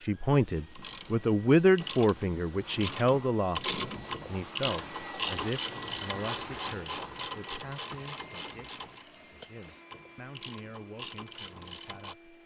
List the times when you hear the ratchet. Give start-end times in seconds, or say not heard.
0.8-12.2.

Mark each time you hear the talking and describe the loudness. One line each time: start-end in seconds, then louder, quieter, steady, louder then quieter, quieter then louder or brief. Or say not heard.
0.0-12.2 quieter.